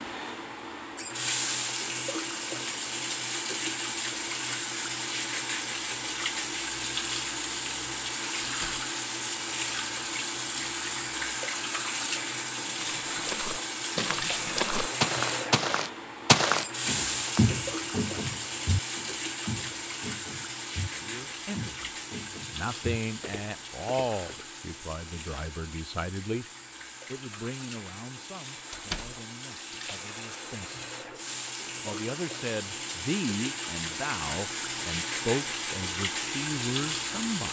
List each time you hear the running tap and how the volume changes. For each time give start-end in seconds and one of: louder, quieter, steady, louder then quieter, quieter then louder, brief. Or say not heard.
0.0-37.4 quieter then louder.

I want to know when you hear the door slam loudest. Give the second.
29 s.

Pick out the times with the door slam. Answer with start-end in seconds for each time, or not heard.
8.4-8.8, 28.7-29.2.